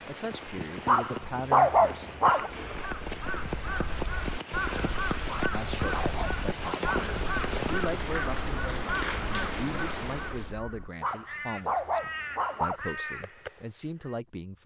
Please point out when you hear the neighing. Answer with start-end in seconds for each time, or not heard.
not heard.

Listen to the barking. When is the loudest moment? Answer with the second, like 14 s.
2 s.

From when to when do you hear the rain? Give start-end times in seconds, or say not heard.
0.0-10.6.